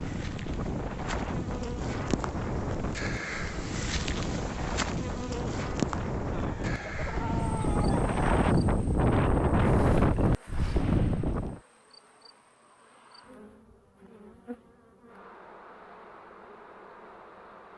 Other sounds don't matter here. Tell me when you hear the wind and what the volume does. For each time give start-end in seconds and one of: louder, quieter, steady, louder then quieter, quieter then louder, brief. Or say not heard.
0.0-11.6 louder.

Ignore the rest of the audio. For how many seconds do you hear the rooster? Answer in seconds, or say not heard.
2 s.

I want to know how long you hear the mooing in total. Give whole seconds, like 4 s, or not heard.
not heard.